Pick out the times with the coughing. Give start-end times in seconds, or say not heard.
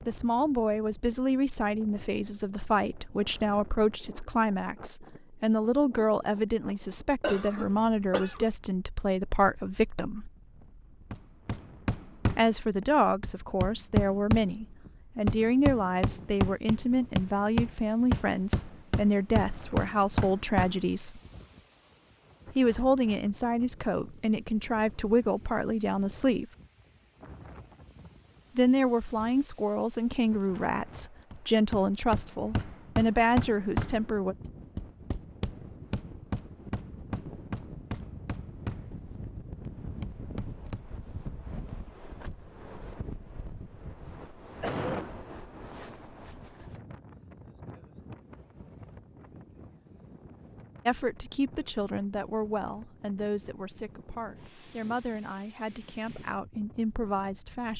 7.2-8.4, 44.6-45.1.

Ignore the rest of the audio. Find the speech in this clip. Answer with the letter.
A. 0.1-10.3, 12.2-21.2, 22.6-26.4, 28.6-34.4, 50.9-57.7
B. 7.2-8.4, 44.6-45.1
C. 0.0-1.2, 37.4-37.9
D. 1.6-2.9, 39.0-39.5
A.